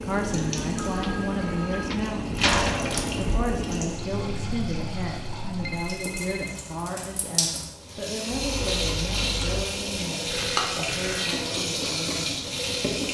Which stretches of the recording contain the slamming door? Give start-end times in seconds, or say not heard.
2.4-3.3.